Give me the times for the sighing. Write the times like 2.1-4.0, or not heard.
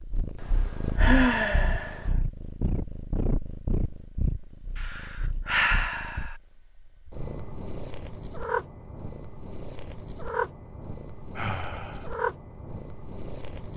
0.4-2.1, 4.8-6.3, 11.3-12.1.